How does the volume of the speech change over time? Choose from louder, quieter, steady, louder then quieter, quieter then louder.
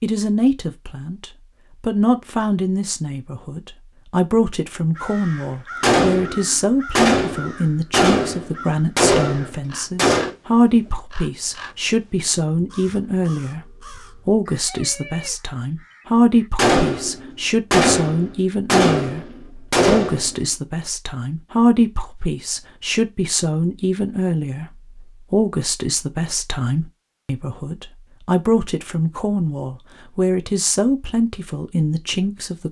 steady.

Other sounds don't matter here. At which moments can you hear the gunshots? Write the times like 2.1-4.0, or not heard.
5.8-10.3, 16.6-20.4.